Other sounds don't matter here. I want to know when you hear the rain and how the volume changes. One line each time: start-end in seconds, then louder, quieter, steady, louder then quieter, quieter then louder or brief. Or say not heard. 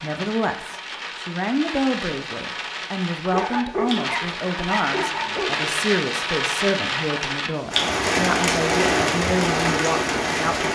0.0-10.7 louder.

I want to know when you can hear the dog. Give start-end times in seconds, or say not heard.
3.3-5.8.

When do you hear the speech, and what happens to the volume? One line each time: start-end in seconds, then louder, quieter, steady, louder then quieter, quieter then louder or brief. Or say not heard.
0.0-10.7 steady.